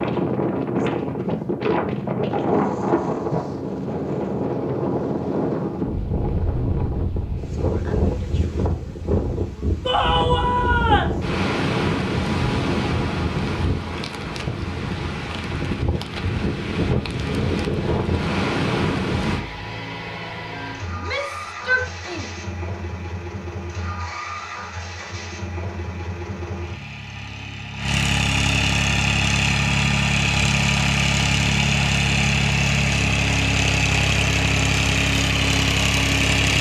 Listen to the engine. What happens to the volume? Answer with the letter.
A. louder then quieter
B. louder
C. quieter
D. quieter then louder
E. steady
B.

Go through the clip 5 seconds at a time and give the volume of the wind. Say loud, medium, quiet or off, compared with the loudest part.
loud, loud, loud, loud, off, off, off, off.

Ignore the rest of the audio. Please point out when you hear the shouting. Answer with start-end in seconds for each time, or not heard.
9.8-11.2, 20.9-22.2.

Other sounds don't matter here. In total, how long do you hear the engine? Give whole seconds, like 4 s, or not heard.
17 s.